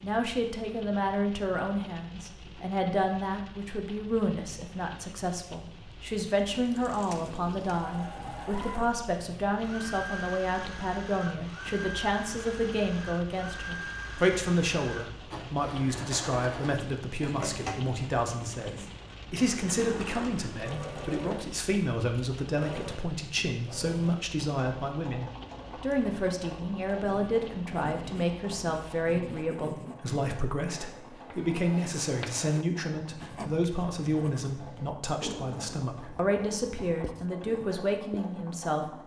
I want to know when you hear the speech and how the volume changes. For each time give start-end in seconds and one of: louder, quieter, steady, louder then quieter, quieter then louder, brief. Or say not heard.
0.0-39.0 steady.